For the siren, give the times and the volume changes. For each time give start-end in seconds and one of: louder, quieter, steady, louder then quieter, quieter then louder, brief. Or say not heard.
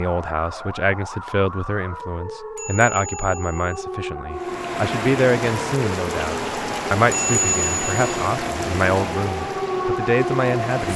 0.0-10.9 louder.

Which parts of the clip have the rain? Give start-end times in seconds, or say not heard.
4.3-10.9.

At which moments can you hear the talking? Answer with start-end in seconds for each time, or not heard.
0.0-10.9.